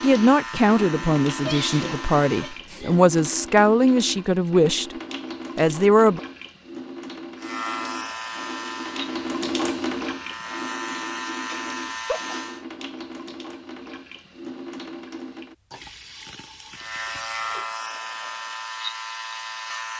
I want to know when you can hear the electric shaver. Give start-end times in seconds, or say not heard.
0.0-2.6, 7.3-12.7, 16.8-19.9.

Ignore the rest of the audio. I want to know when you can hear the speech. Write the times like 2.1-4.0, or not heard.
0.0-5.0, 5.5-6.2.